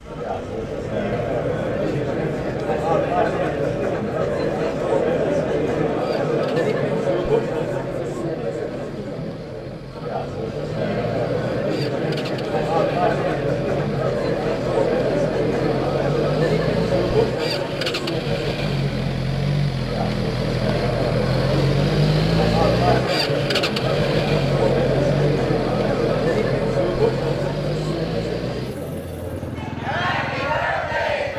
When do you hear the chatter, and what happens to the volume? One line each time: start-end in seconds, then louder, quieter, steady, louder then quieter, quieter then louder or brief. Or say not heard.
0.0-31.3 steady.